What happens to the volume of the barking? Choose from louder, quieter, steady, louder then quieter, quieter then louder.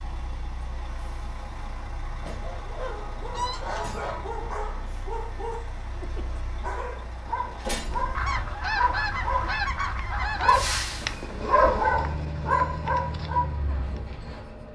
louder.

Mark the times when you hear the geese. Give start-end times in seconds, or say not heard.
2.4-4.2, 8.1-10.9.